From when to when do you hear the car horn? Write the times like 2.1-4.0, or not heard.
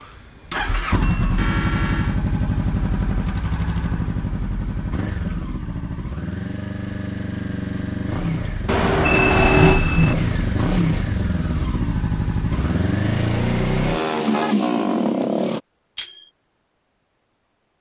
1.4-2.2, 8.7-9.8, 12.5-14.6.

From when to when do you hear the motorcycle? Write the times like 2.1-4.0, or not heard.
0.0-15.6.